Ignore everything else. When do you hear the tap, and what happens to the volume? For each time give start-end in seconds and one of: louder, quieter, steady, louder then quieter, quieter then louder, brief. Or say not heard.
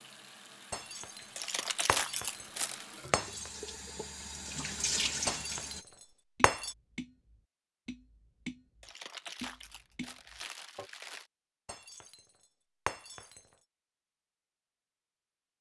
0.0-5.8 louder.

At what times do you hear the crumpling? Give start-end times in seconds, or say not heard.
1.4-2.9, 8.8-11.3.